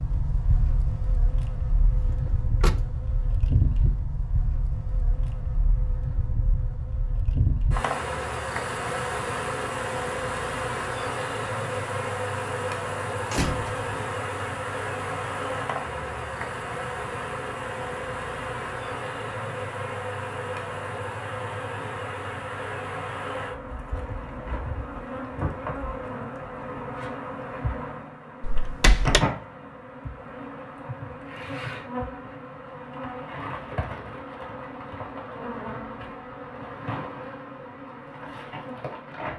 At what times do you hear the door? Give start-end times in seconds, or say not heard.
2.0-2.9, 13.2-13.8, 28.4-29.2.